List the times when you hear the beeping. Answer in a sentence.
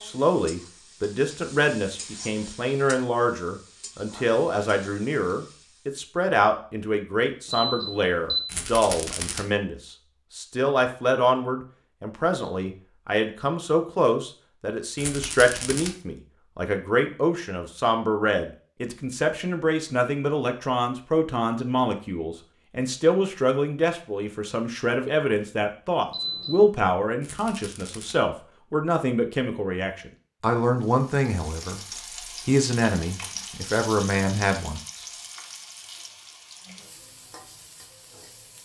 The beeping can be heard from 7.5 to 8.4 s and from 26.1 to 26.7 s.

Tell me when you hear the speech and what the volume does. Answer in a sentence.
The speech can be heard from 0.0 to 31.8 s, at a steady volume; and briefly from 32.5 to 35.0 s.